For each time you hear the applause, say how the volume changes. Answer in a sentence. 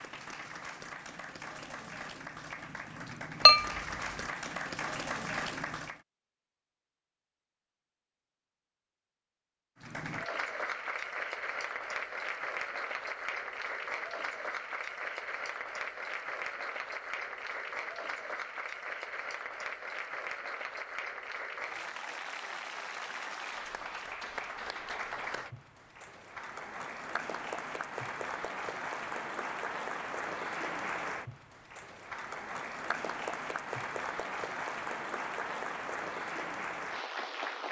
The applause can be heard from 0.0 to 6.0 s, getting louder; and from 9.8 to 37.6 s, at a steady volume.